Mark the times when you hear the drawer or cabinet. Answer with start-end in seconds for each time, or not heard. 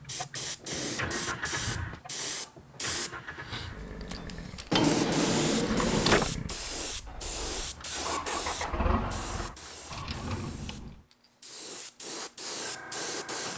0.6-2.0, 4.7-6.3, 9.9-11.1.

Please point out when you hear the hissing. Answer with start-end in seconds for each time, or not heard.
0.1-13.5.